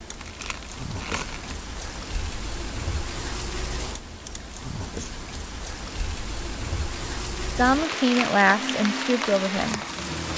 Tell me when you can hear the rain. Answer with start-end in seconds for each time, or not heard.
0.0-10.3.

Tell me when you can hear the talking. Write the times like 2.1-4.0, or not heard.
7.5-9.8.